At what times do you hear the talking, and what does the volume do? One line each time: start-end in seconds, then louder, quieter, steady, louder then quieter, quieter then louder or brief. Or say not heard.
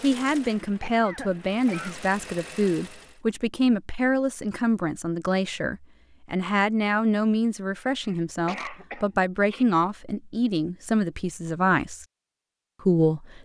0.0-12.1 steady
12.8-13.3 brief.